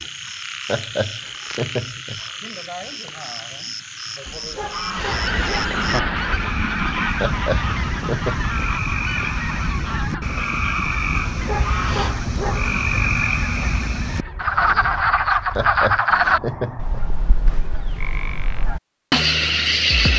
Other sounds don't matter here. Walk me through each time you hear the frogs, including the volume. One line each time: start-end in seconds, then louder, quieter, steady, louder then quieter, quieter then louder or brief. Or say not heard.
0.0-20.1 louder.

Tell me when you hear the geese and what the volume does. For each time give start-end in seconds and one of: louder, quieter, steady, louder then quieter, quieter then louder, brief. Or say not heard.
4.8-17.1 quieter.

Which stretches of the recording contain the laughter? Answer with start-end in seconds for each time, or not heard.
0.7-2.2, 7.2-8.7, 15.6-17.1.